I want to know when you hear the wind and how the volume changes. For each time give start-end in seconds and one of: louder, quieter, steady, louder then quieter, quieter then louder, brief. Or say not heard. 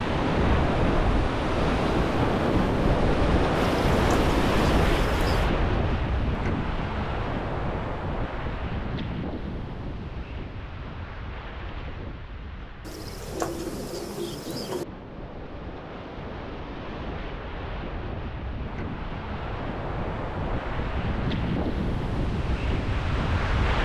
0.0-23.8 quieter then louder.